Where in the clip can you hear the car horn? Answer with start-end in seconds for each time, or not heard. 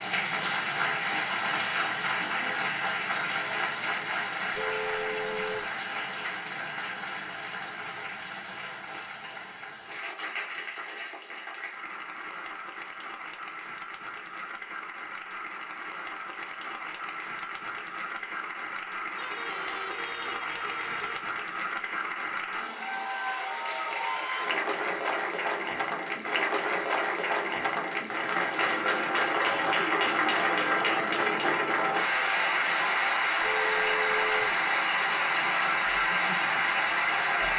4.5-5.7, 19.1-21.2, 33.4-34.5.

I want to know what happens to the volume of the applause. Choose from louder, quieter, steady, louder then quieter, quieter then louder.
quieter then louder.